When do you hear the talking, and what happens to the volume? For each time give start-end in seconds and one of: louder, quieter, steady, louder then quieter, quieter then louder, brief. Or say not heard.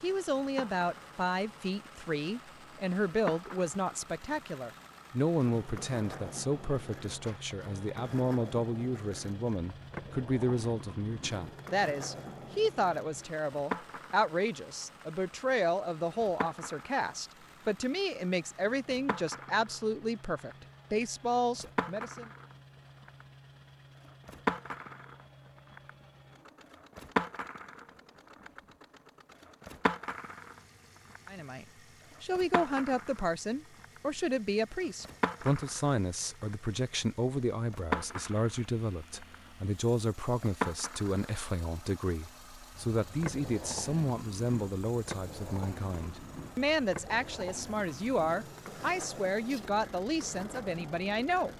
0.0-22.3 steady
31.3-51.5 steady.